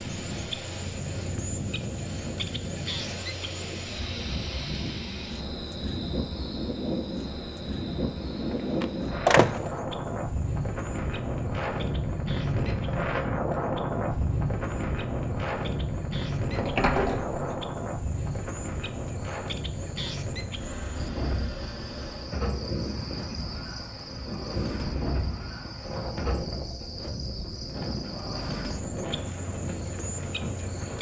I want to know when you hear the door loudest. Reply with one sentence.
The volume of the door peaks at 9 seconds.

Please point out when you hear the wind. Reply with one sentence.
You can hear the wind from 0.0 to 30.9 s.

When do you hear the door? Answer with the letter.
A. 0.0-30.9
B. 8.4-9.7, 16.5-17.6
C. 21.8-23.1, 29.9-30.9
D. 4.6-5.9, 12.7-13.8
B.